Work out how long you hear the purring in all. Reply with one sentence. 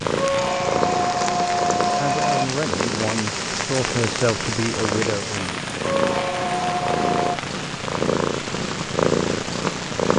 The purring can be heard for 10 seconds in total.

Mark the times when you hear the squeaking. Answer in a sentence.
The squeaking can be heard from 0.1 to 2.5 s and from 5.8 to 7.2 s.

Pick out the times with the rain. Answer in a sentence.
You can hear the rain from 0.0 to 10.1 s.